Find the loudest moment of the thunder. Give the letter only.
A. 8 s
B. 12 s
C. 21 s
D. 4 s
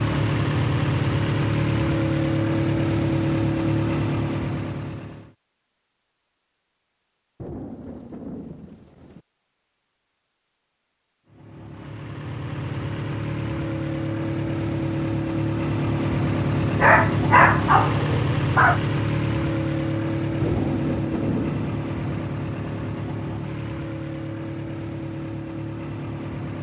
C.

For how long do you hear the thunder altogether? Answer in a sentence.
The thunder can be heard for 4 seconds in total.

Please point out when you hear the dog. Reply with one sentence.
The dog can be heard from 16.8 to 18.8 s.